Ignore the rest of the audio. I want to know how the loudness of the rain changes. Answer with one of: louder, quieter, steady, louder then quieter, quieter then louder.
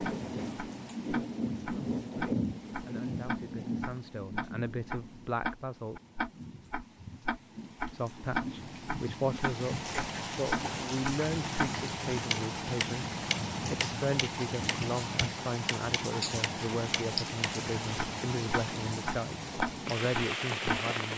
quieter then louder.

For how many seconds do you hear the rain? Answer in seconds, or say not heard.
21 s.